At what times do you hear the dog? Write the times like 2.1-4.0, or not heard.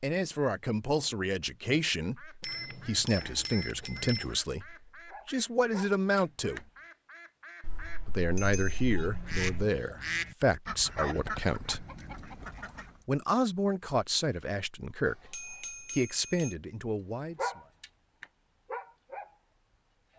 5.0-6.6, 17.4-19.4.